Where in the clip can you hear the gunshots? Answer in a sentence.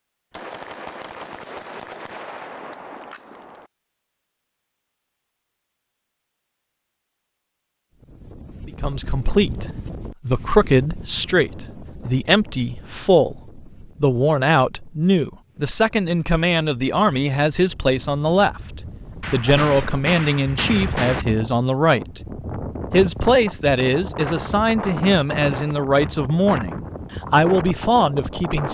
You can hear the gunshots from 0.3 to 3.7 s and from 19.2 to 21.2 s.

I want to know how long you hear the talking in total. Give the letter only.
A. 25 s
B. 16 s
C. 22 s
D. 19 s
D.